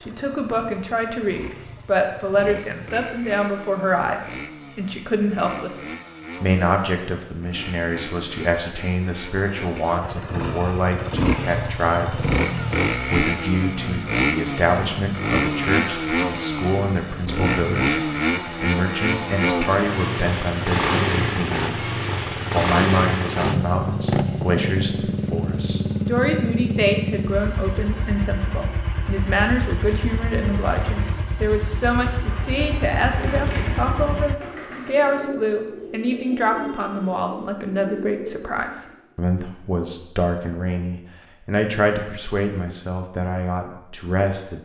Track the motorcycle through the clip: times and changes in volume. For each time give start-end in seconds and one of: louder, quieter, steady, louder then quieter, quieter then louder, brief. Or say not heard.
0.0-34.4 louder then quieter.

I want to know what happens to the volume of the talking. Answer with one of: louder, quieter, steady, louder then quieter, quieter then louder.
steady.